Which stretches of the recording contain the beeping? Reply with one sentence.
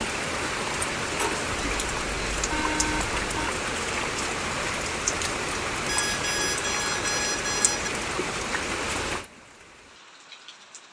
The beeping can be heard from 1.5 to 3.5 s and from 5.8 to 7.9 s.